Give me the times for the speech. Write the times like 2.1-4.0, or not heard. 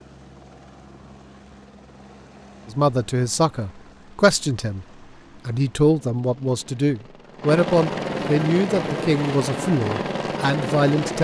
2.6-4.8, 5.5-11.1.